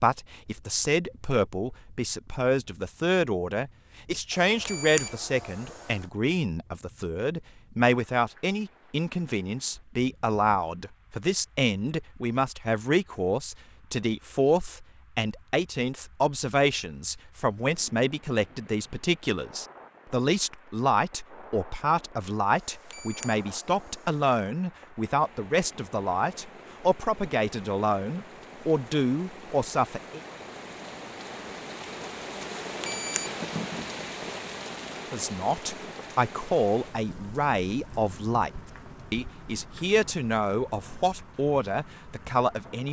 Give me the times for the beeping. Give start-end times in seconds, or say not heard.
4.3-6.1, 22.6-24.2, 32.6-33.4.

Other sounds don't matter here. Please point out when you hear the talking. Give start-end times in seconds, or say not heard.
0.0-30.2, 35.1-42.8.